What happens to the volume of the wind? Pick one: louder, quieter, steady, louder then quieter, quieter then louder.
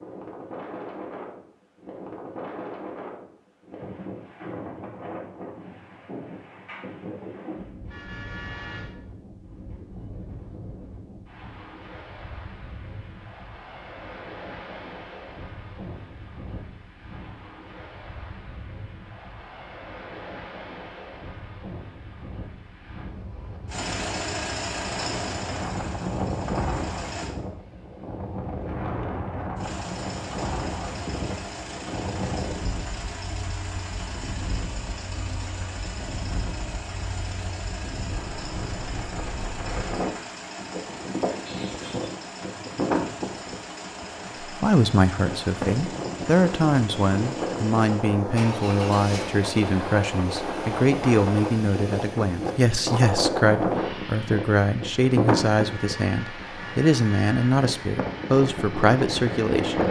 louder.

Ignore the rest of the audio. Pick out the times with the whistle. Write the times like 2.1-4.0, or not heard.
not heard.